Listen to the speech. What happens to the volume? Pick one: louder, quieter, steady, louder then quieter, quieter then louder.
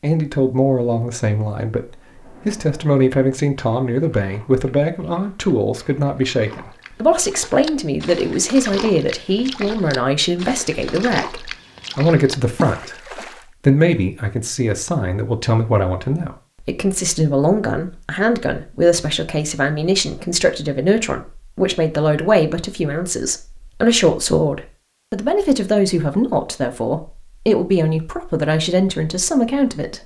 steady.